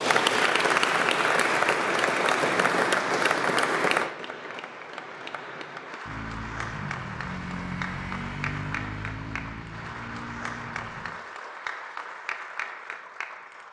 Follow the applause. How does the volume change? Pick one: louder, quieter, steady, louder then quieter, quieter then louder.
quieter.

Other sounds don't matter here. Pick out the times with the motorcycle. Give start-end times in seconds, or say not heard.
6.0-11.2.